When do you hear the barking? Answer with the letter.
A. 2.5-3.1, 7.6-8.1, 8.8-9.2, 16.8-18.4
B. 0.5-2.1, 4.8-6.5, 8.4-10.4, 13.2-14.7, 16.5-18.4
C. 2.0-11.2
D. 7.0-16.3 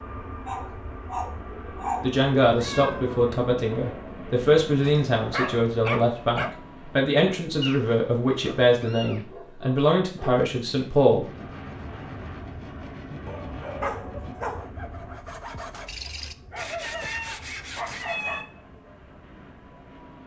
B.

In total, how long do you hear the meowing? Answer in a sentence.
You can hear the meowing for 3 seconds altogether.